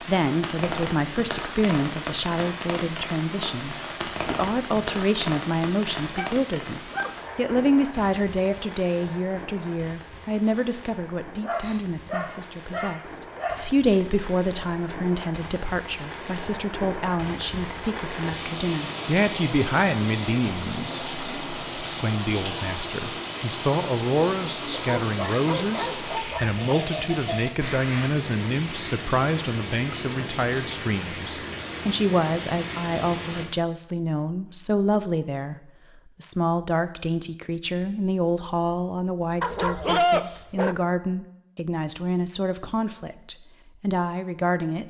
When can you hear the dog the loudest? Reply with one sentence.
The volume of the dog peaks at 40 seconds.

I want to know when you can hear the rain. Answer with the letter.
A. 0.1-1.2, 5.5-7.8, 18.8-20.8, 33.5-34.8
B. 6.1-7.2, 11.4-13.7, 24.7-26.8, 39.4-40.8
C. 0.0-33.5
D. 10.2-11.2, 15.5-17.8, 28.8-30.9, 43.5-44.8
C.